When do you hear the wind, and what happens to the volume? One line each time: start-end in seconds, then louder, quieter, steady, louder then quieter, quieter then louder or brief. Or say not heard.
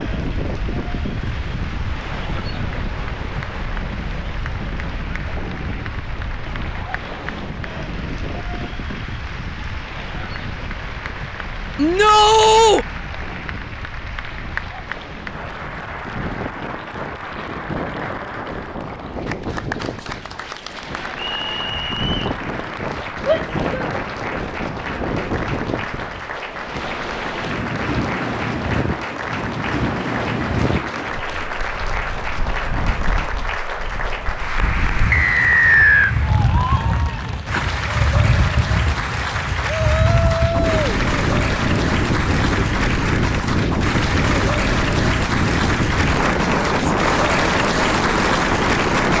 0.0-49.1 louder.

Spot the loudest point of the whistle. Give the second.
36 s.